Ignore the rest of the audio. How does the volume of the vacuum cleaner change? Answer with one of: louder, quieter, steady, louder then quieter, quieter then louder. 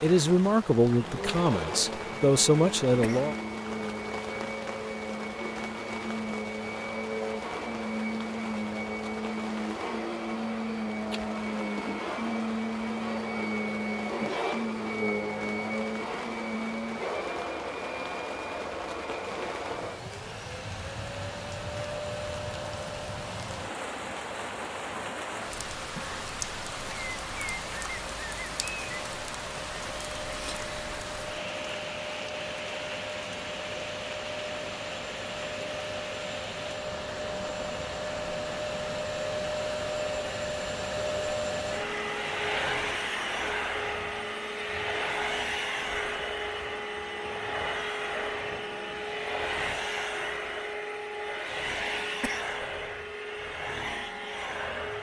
quieter then louder.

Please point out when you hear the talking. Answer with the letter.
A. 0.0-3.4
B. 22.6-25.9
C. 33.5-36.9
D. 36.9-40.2
A.